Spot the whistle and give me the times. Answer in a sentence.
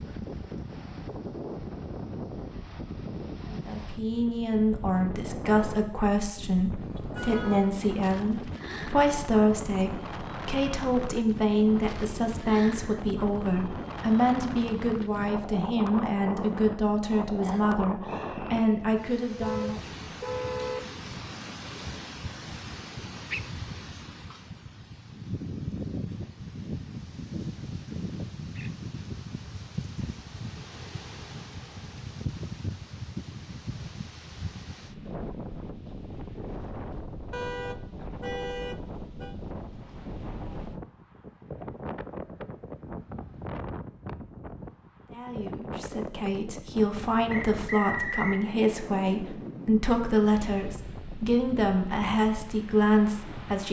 The whistle can be heard from 17.4 to 18.6 s and from 47.3 to 48.4 s.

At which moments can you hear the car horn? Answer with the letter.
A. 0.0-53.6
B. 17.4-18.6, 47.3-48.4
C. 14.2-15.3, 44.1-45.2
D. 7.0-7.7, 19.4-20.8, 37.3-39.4
D.